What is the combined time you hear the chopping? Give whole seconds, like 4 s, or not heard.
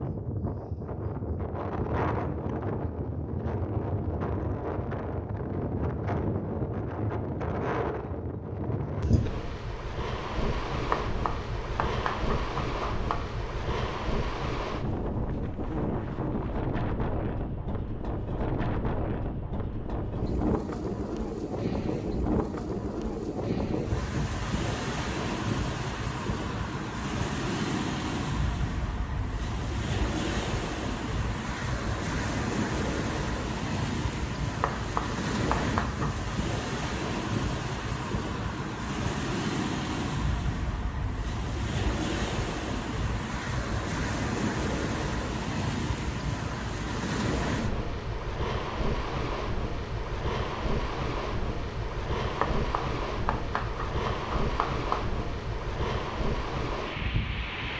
7 s.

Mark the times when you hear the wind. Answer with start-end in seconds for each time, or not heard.
0.0-57.7.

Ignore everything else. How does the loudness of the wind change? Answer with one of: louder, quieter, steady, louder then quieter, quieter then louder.
steady.